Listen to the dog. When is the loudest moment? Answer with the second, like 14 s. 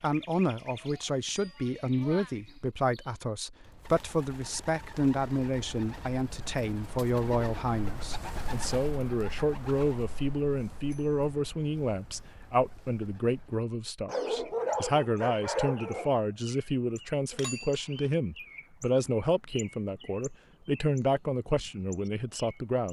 15 s.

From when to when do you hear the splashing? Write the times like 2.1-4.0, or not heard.
not heard.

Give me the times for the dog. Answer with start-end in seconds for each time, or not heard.
14.1-16.1.